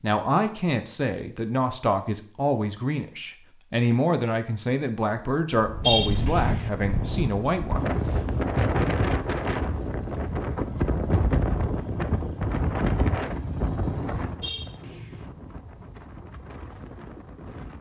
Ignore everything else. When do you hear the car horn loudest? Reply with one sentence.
The volume of the car horn peaks at 6 seconds.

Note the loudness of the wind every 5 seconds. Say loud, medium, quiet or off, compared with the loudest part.
off, loud, loud, quiet.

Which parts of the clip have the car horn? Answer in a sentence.
The car horn can be heard from 5.8 to 6.7 s and from 14.4 to 15.3 s.